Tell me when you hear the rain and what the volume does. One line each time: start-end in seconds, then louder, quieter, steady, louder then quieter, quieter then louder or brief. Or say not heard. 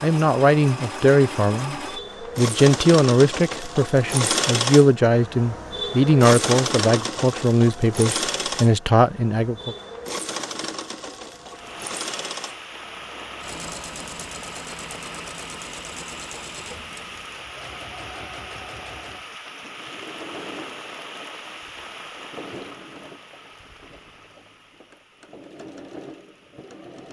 11.5-27.0 quieter.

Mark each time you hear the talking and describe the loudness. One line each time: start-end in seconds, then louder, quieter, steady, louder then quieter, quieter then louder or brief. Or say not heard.
0.0-1.8 brief
2.4-9.8 steady.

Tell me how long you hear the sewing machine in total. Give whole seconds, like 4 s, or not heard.
27 s.